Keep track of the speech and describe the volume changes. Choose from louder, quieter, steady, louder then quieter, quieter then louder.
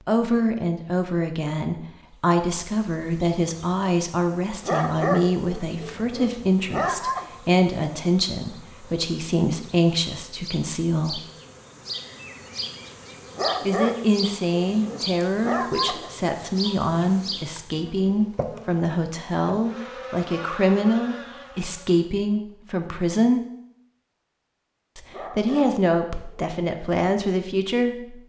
steady.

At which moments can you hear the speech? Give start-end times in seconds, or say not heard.
0.1-11.2, 13.7-23.4, 24.9-28.1.